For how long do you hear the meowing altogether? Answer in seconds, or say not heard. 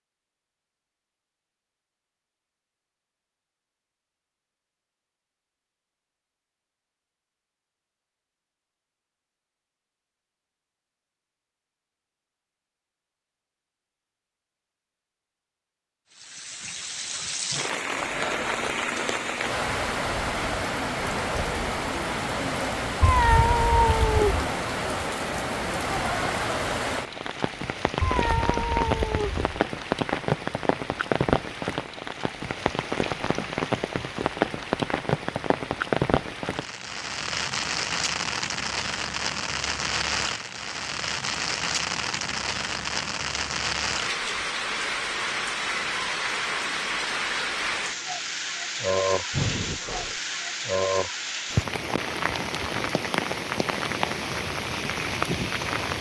3 s.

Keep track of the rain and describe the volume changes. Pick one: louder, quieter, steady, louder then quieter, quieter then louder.
steady.